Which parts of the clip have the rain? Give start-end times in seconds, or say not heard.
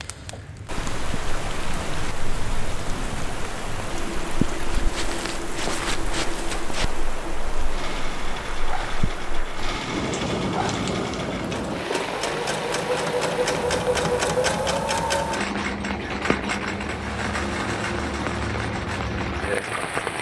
0.0-20.1.